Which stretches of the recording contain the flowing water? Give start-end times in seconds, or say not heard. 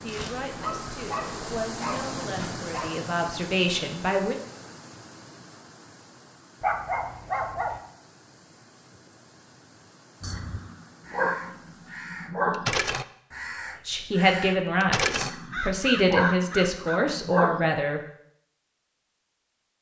0.0-12.2.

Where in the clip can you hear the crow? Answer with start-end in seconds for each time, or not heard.
10.2-17.0.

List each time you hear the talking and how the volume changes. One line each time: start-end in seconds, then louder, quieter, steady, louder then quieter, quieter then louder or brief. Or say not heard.
0.0-4.3 louder
13.8-18.0 quieter then louder.